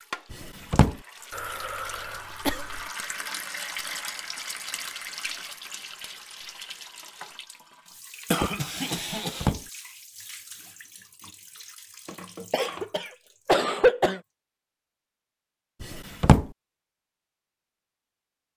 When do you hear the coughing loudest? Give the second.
14 s.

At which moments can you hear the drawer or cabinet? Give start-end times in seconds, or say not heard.
0.3-0.9, 8.9-9.7, 15.8-16.4.